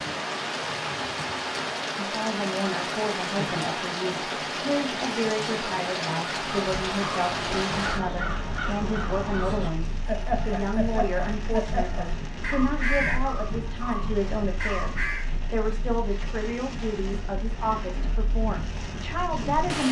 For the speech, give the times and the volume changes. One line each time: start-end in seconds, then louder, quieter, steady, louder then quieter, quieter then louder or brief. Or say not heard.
1.9-19.8 steady.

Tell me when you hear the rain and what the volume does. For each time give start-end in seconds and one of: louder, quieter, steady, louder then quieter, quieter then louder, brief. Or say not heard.
0.0-19.8 quieter.